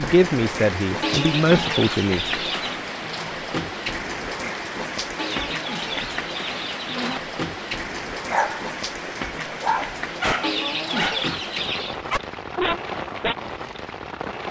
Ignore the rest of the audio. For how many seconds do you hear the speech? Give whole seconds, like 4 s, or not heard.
2 s.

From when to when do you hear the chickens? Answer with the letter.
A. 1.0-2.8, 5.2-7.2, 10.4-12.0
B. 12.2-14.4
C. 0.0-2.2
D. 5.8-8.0
A.